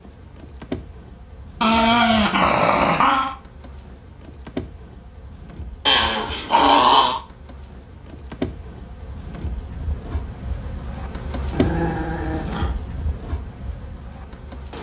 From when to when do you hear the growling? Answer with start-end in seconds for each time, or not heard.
1.6-3.4, 5.8-7.2, 11.5-12.8.